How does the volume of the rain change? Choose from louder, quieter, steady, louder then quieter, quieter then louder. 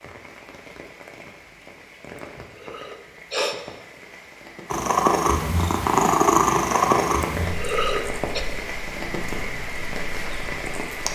louder.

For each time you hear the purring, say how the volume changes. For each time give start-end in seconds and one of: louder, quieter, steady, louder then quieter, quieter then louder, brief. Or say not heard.
4.7-11.0 quieter.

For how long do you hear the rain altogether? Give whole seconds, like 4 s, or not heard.
11 s.